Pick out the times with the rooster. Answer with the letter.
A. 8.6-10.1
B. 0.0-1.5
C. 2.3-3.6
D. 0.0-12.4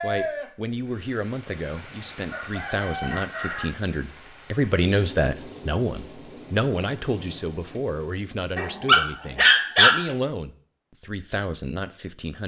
C.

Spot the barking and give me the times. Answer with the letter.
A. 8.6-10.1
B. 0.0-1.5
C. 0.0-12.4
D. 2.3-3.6
A.